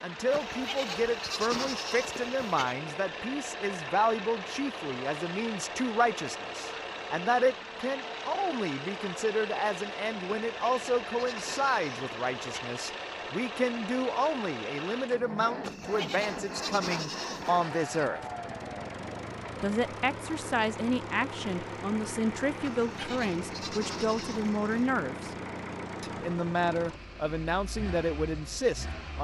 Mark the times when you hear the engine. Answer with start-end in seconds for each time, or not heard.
0.0-29.2.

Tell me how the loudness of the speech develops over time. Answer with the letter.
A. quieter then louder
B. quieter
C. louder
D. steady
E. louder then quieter
D.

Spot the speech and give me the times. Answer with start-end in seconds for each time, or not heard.
0.0-18.2, 19.6-25.3, 26.0-29.2.